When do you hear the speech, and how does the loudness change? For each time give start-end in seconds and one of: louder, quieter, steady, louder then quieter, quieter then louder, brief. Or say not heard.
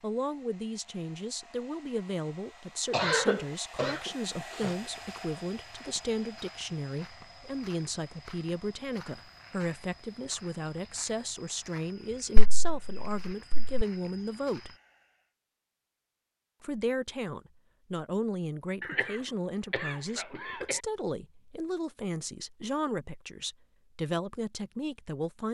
0.0-14.8 steady
16.6-25.4 steady.